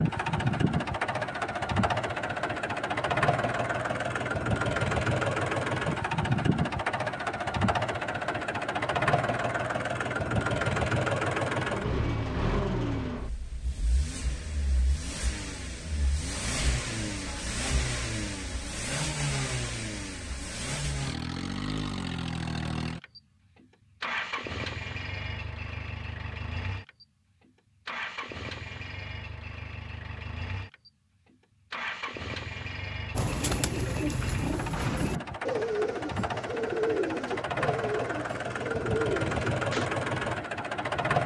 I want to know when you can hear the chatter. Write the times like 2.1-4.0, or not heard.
not heard.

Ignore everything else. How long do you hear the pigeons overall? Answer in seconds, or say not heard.
7 s.